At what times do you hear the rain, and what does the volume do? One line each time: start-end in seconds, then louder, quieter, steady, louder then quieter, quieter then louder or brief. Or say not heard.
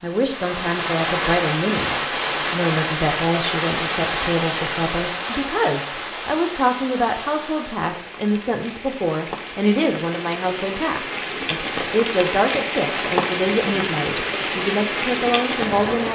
0.0-16.1 quieter then louder.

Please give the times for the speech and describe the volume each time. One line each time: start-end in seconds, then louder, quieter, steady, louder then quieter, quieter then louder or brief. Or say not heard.
0.0-16.1 steady.